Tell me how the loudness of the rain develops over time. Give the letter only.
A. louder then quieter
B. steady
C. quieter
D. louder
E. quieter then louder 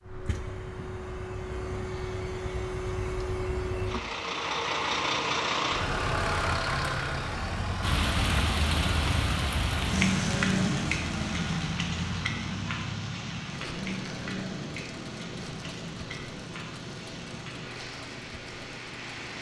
C.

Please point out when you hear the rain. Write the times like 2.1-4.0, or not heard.
7.8-19.3.